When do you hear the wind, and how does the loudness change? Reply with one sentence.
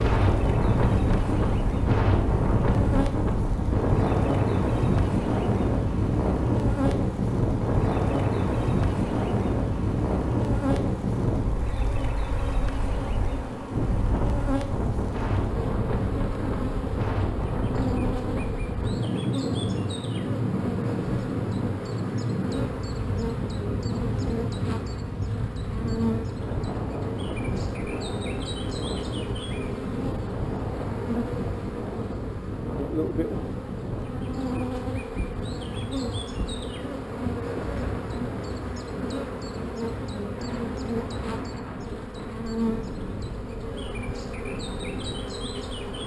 You can hear the wind from 0.0 to 46.0 s, getting quieter.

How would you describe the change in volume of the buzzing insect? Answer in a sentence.
The volume of the buzzing insect stays about the same.